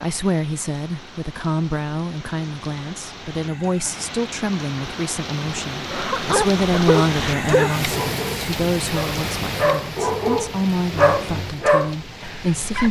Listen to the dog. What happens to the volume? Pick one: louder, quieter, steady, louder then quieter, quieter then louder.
steady.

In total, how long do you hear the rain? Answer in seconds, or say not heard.
13 s.